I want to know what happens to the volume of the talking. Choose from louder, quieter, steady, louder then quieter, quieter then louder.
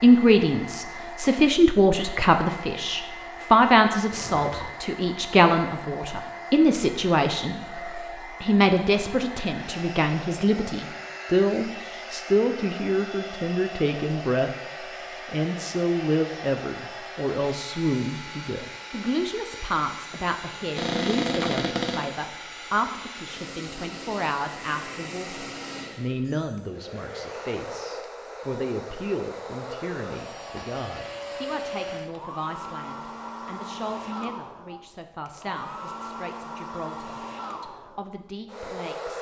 quieter.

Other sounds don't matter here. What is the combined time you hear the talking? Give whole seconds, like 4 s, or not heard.
38 s.